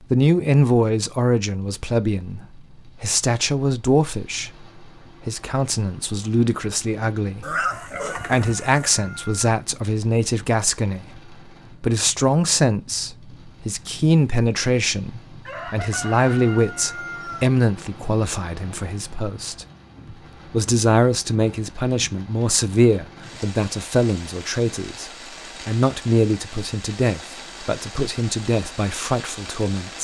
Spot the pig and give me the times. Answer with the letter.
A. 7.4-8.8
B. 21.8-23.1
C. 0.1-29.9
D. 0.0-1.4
A.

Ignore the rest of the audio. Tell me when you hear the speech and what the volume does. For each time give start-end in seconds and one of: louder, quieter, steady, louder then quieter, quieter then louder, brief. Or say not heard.
0.1-29.9 steady.